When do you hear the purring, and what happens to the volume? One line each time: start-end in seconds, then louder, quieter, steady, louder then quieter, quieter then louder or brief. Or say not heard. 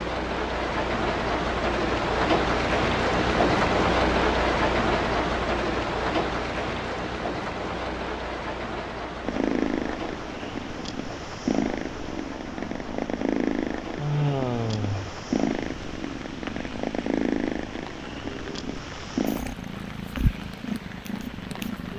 9.2-21.9 steady.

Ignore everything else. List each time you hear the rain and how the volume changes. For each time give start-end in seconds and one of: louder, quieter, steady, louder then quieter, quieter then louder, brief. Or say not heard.
0.0-21.9 quieter.